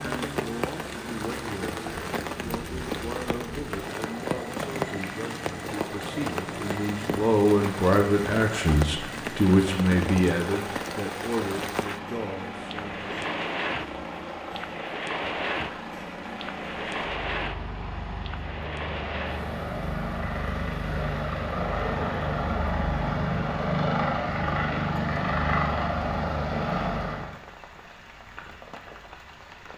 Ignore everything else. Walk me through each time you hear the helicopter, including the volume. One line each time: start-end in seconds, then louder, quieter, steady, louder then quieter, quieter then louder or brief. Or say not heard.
0.0-27.4 louder.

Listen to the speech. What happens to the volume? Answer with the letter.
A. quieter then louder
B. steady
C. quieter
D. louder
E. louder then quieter
E.